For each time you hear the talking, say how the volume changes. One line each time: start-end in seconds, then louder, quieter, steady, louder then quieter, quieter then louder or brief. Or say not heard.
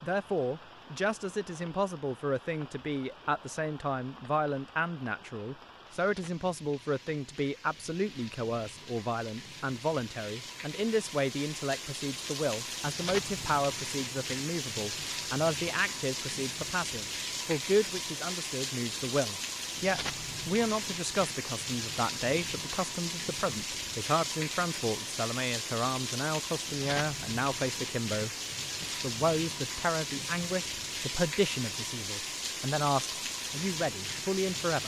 0.0-34.8 steady.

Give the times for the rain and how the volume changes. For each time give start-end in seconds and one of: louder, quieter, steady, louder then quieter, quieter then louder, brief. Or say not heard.
0.0-34.8 louder.